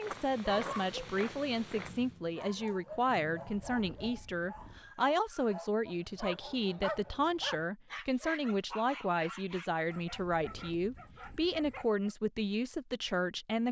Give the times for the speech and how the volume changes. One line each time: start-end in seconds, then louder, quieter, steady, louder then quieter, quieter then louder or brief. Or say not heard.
0.0-13.6 steady.